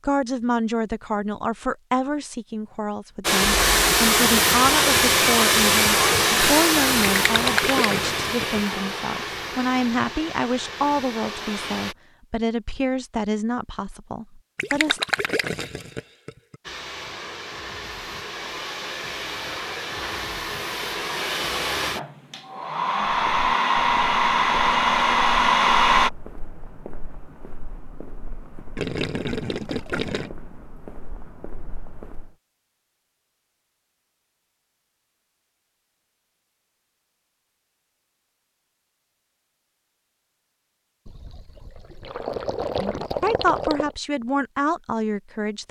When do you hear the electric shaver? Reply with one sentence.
You can't hear the electric shaver here.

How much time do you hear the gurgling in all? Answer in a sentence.
The gurgling can be heard for 8 seconds in total.